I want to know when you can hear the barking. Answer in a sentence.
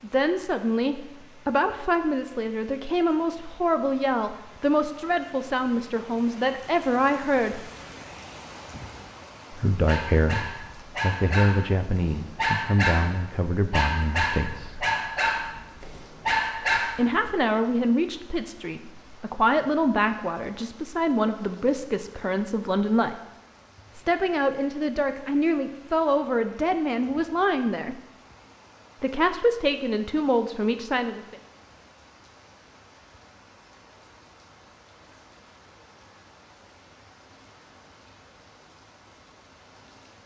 The barking can be heard from 9.8 to 17.4 s.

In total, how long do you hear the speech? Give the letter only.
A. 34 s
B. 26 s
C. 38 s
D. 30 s
B.